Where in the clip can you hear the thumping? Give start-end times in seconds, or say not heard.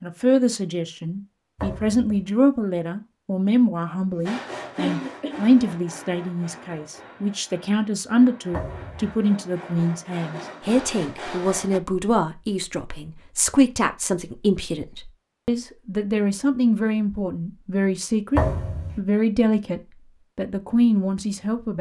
1.6-2.2, 8.5-9.2, 18.4-19.0.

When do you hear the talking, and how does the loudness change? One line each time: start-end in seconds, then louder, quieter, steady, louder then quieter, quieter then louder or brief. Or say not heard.
0.0-21.7 steady.